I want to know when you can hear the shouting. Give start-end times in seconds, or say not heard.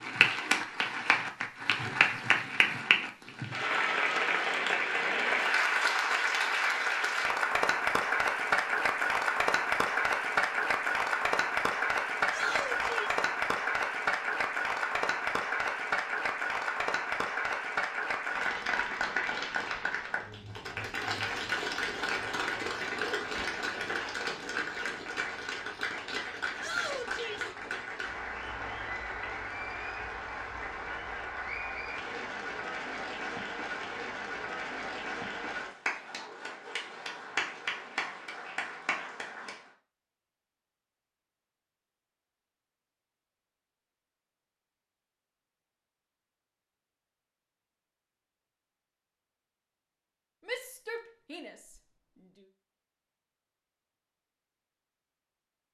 12.2-13.2, 26.6-27.5, 50.5-51.5.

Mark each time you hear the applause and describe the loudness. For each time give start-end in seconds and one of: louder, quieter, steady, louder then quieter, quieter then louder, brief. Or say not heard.
0.0-39.7 quieter.